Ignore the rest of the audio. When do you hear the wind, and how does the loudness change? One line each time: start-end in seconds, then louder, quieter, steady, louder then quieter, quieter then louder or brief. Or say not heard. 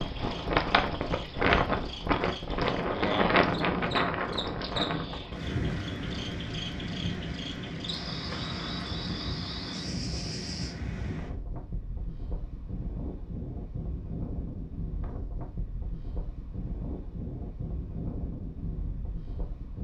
0.0-19.7 quieter.